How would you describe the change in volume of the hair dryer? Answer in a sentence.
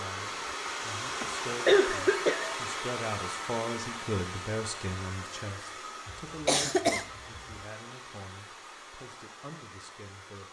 The volume of the hair dryer goes down.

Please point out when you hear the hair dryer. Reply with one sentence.
You can hear the hair dryer from 0.0 to 10.4 s.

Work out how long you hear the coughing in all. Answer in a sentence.
You can hear the coughing for 3 seconds altogether.